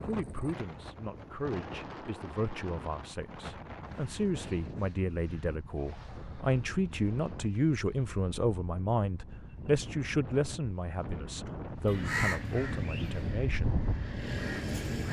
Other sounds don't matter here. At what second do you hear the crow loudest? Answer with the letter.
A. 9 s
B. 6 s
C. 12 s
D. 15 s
C.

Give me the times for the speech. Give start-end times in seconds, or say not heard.
0.0-13.8.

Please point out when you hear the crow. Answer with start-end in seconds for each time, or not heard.
11.8-15.0.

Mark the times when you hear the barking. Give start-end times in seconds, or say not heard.
not heard.